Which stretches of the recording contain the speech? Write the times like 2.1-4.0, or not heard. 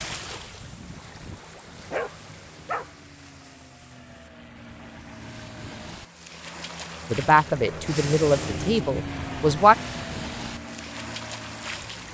7.1-9.8.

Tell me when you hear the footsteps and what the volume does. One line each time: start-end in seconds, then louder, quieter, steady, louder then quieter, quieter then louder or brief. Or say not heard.
not heard.